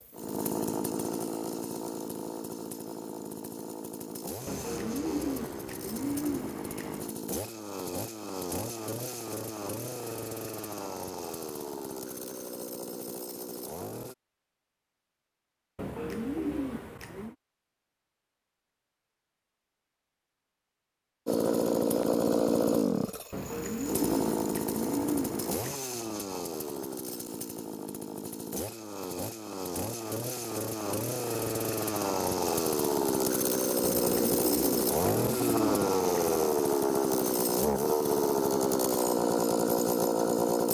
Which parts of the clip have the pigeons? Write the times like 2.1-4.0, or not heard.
4.5-7.2, 15.8-17.4, 23.3-25.8, 33.8-36.4.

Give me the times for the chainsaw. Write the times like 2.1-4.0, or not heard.
0.0-14.2, 21.2-40.6.